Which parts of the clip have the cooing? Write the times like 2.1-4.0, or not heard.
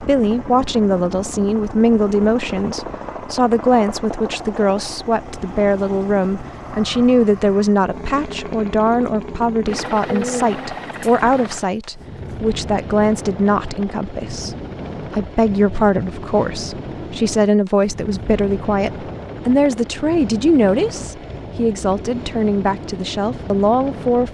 9.7-11.2.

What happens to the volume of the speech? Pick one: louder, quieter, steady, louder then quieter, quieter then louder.
steady.